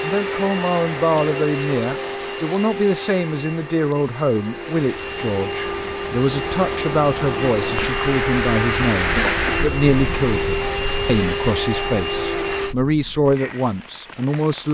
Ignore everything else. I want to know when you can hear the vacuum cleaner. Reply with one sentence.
You can hear the vacuum cleaner from 0.0 to 12.8 s.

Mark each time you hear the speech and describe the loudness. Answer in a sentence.
You can hear the speech from 0.0 to 14.6 s, at a steady volume.